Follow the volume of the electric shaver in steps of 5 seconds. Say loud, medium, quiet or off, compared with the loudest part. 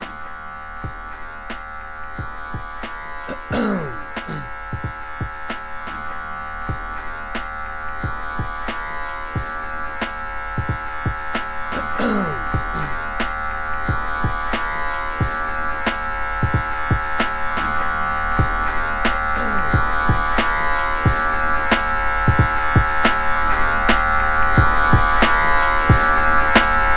quiet, quiet, medium, medium, loud, loud.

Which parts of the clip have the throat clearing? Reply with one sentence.
You can hear the throat clearing from 3.2 to 4.5 s, from 11.7 to 12.9 s and from 19.1 to 20.4 s.